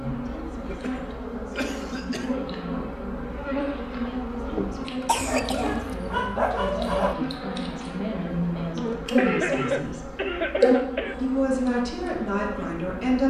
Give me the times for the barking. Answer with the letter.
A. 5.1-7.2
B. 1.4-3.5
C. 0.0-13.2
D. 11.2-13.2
A.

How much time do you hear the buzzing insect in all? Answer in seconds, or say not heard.
13 s.